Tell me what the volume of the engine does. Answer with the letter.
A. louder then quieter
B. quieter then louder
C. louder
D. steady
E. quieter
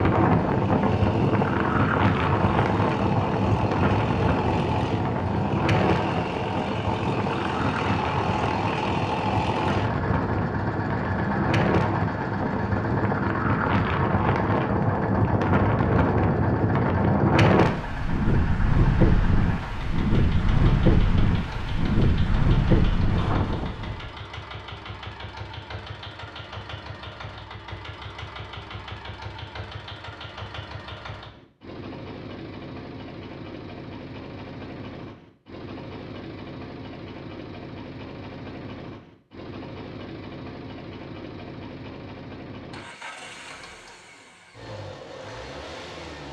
E.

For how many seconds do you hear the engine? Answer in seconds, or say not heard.
46 s.